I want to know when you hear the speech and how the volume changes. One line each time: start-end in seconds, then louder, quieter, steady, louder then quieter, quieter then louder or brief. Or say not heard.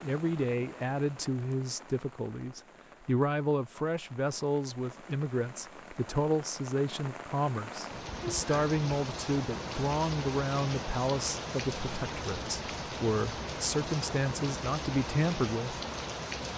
0.0-15.8 steady.